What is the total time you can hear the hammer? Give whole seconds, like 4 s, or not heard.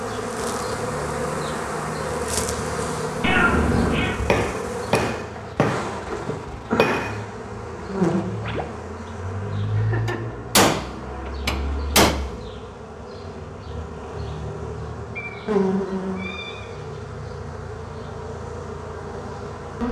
5 s.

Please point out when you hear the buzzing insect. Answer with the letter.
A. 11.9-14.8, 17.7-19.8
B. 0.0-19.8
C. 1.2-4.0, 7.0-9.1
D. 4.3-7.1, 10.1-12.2
B.